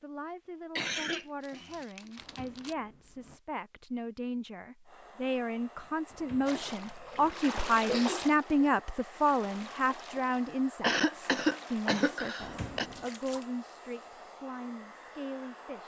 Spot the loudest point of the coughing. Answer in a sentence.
The loudest moment of the coughing is at 11 seconds.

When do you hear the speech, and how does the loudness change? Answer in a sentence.
You can hear the speech from 0.0 to 15.8 s, getting louder then quieter.